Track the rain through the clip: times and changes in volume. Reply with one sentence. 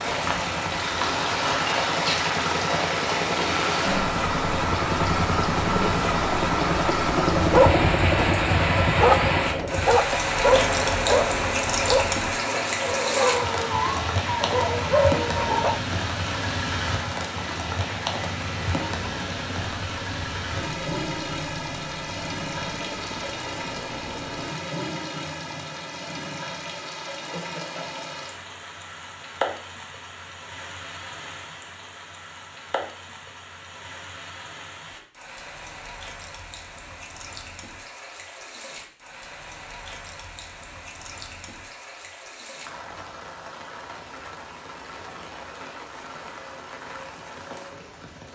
The rain can be heard from 0.0 to 48.2 s, getting quieter.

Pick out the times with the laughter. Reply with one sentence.
You can hear the laughter from 27.1 to 28.1 s.